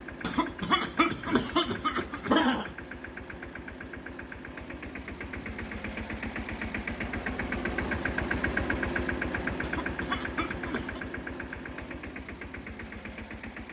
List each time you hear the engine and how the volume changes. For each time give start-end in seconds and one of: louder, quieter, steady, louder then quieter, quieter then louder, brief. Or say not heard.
0.0-13.6 louder then quieter.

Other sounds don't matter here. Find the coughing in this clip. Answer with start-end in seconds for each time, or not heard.
0.2-2.7, 9.6-11.0.